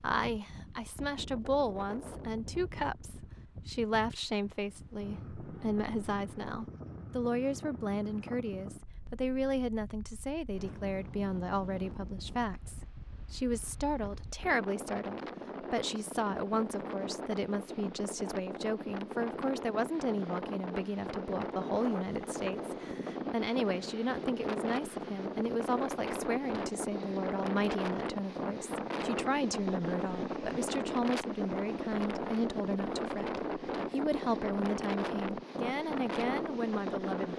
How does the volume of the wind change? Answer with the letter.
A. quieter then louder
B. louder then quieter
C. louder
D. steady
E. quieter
C.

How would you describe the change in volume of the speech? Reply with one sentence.
The volume of the speech stays about the same.